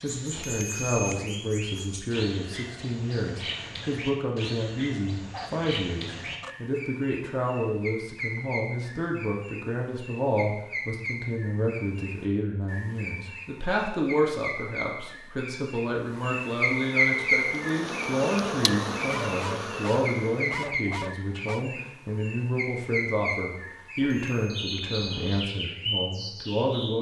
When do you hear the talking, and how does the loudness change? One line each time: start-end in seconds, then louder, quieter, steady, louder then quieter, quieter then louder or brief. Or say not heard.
0.0-26.9 steady.